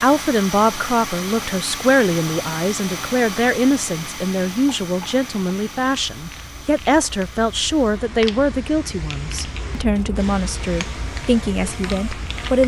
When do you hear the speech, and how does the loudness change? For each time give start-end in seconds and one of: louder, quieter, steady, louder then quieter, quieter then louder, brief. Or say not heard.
0.0-12.6 steady.